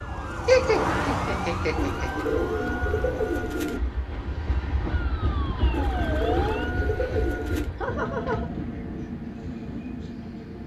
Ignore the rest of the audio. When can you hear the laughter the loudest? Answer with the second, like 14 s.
1 s.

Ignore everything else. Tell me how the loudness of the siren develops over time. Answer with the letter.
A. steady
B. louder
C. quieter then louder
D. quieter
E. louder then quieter
C.